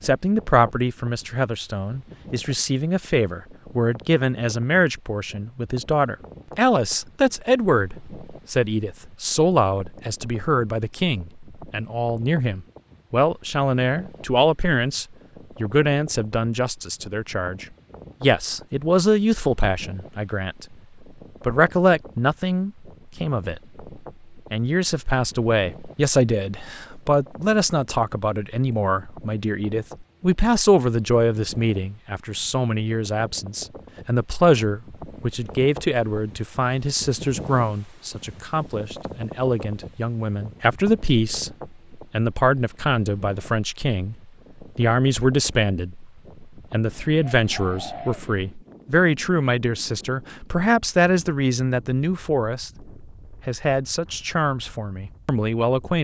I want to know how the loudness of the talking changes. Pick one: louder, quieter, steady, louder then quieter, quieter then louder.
steady.